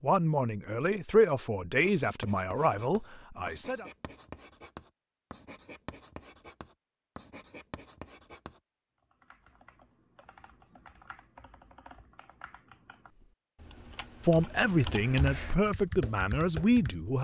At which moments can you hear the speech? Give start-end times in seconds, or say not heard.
0.0-3.9, 14.2-17.1.